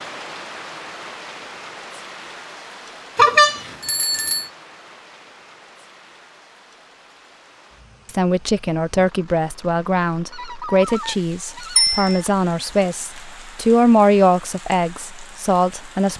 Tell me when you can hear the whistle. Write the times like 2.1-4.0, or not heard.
not heard.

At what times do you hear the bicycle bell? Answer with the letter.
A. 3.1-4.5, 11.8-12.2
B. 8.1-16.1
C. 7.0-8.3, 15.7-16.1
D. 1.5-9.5
A.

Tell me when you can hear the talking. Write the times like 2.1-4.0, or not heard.
8.1-16.1.